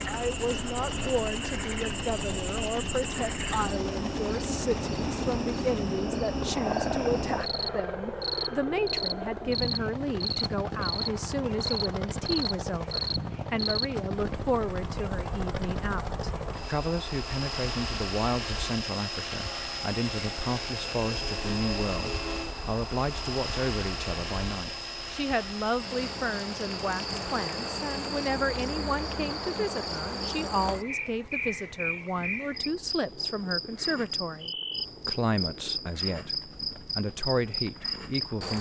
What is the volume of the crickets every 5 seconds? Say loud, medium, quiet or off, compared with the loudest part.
loud, loud, loud, medium, medium, loud, loud, loud.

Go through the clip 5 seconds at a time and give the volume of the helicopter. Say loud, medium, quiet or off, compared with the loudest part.
loud, loud, loud, loud, loud, medium, quiet, quiet.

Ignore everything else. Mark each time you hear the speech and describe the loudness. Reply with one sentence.
You can hear the speech from 0.1 to 38.5 s, at a steady volume.